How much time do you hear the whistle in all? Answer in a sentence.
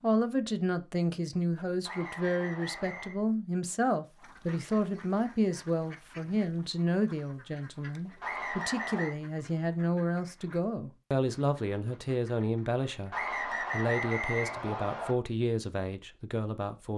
The whistle can be heard for 4 seconds in total.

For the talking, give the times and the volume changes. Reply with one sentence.
You can hear the talking from 0.0 to 16.9 s, at a steady volume.